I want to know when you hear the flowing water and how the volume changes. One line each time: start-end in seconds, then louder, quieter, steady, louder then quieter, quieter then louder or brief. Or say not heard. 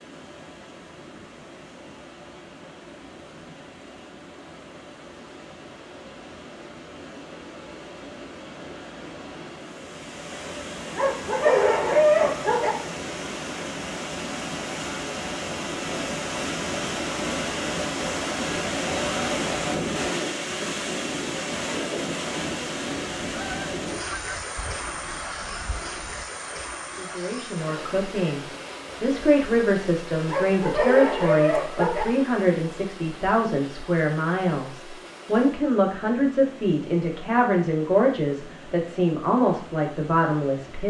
0.0-40.8 louder then quieter.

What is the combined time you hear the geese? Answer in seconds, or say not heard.
3 s.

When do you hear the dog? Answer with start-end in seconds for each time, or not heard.
10.9-12.7, 30.2-32.0.